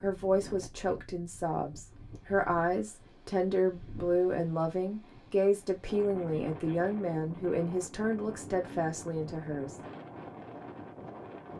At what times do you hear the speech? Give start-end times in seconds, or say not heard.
0.0-9.8.